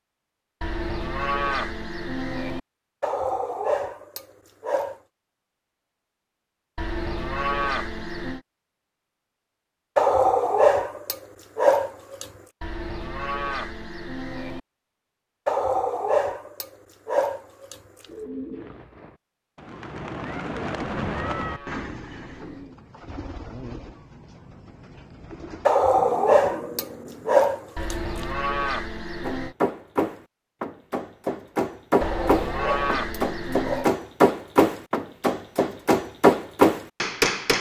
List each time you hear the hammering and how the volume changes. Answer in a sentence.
You can hear the hammering from 29.2 to 37.5 s, getting louder.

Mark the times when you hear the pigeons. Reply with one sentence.
You can hear the pigeons from 18.1 to 27.8 s.